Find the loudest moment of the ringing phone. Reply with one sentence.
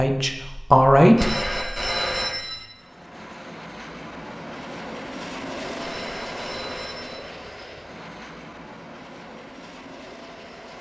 The volume of the ringing phone peaks at 2 seconds.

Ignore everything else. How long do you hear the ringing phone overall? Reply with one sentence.
The ringing phone can be heard for 3 seconds in total.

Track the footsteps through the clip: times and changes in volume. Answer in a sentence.
The footsteps can't be heard in this clip.